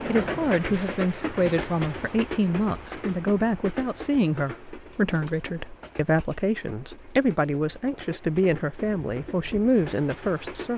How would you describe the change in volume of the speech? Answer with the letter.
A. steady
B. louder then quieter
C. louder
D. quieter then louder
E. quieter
A.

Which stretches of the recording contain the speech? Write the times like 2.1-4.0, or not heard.
0.1-10.7.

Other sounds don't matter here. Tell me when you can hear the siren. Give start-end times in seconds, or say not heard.
not heard.